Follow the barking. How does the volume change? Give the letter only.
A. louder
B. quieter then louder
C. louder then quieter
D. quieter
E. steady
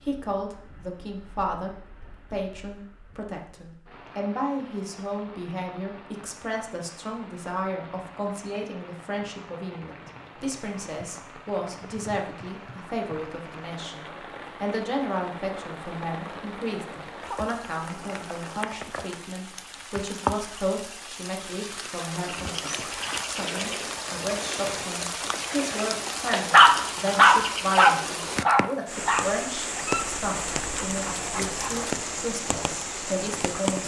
D.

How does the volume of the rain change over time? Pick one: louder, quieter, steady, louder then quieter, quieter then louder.
louder.